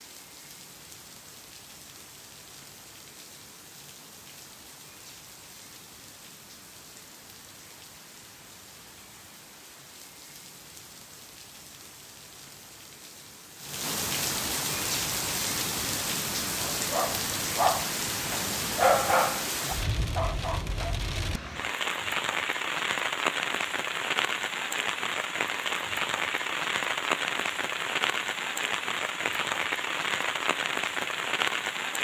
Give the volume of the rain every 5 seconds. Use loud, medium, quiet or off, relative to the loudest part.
quiet, quiet, medium, loud, loud, loud, loud.